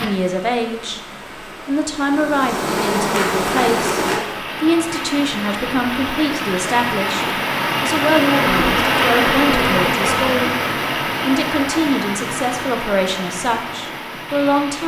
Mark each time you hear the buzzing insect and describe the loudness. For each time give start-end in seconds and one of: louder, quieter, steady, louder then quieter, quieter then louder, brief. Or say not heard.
0.0-4.2 louder
8.3-10.3 brief.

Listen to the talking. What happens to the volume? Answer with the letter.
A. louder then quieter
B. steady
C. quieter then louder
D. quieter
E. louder
B.